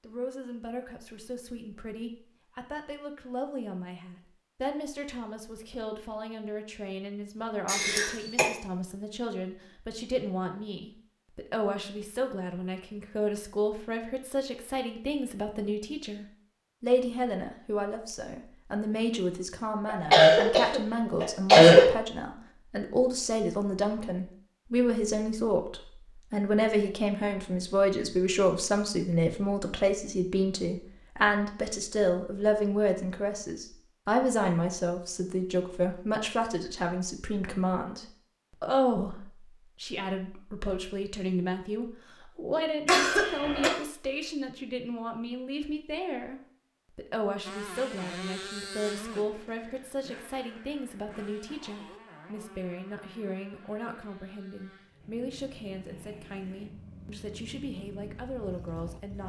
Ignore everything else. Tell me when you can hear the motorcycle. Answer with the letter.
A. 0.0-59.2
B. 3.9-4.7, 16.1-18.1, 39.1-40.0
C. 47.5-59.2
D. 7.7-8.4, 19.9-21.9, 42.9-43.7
C.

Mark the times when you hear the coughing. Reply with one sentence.
You can hear the coughing from 7.7 to 8.4 s, from 19.9 to 21.9 s and from 42.9 to 43.7 s.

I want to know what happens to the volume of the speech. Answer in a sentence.
The volume of the speech goes up, then down.